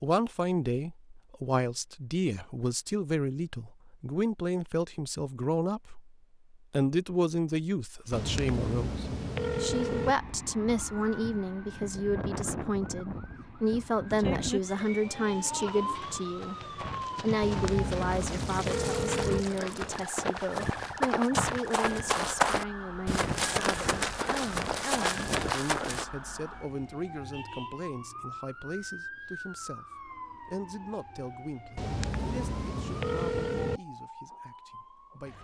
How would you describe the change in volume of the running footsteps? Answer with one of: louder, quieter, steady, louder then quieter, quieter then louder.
louder.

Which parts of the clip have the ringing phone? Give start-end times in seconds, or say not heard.
8.1-10.2, 17.4-19.4, 31.8-33.8.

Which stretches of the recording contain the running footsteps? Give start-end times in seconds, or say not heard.
15.6-26.1.